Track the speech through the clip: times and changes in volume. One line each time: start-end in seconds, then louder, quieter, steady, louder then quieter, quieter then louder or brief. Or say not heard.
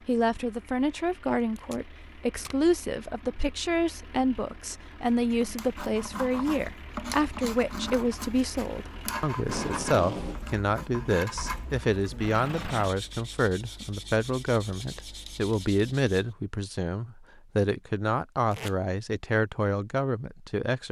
0.1-20.8 steady.